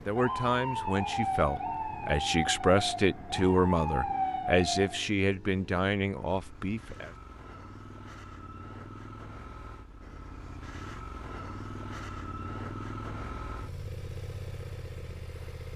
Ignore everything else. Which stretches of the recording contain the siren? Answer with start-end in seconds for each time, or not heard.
0.0-5.1.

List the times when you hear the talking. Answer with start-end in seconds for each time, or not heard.
0.1-7.2.